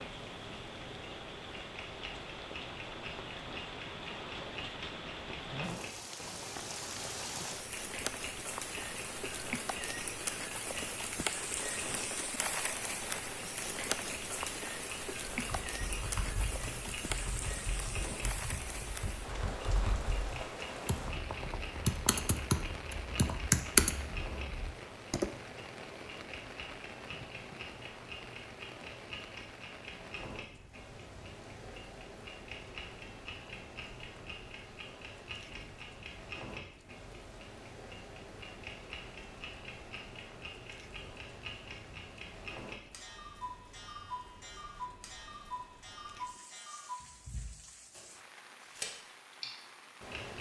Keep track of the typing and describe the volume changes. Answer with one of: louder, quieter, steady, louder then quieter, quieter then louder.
louder.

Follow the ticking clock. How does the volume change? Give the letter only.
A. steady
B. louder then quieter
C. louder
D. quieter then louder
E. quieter
A.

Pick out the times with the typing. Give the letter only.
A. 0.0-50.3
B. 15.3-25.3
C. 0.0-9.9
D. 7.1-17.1
B.